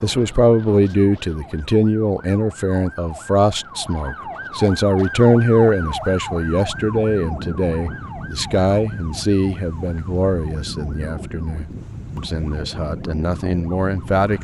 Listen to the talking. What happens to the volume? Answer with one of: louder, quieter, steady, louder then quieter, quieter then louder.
quieter.